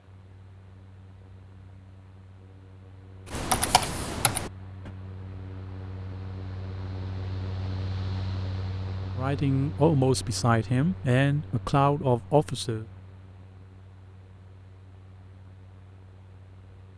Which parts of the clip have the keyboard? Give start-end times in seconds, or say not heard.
3.3-4.9.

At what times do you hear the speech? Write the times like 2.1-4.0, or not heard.
9.2-12.8.